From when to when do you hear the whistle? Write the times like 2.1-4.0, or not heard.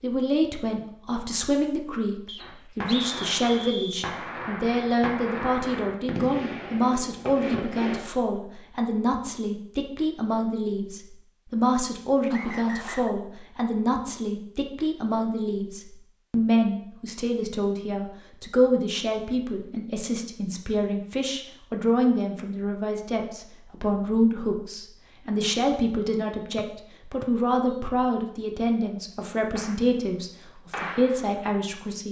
2.2-4.1, 12.3-13.1, 26.6-27.8.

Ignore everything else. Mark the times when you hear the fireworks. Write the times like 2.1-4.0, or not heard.
2.4-8.0, 29.6-30.1, 30.7-31.4.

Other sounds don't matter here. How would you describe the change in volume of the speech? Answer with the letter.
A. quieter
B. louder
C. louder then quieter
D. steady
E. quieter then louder
D.